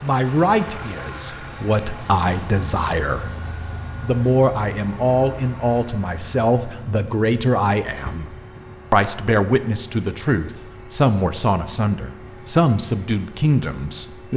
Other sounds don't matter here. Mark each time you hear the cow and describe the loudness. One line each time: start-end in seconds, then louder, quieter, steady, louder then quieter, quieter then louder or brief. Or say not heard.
not heard.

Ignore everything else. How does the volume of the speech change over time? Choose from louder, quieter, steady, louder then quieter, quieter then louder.
steady.